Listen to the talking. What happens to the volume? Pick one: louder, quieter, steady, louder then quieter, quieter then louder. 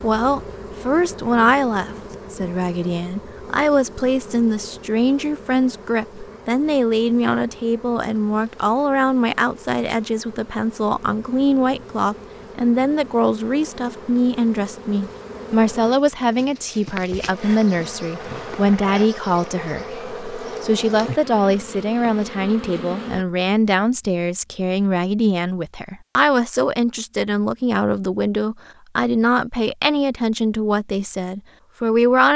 steady.